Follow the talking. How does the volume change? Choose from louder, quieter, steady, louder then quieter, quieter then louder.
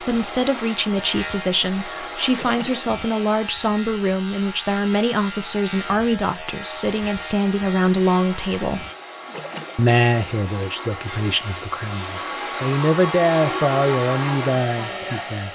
steady.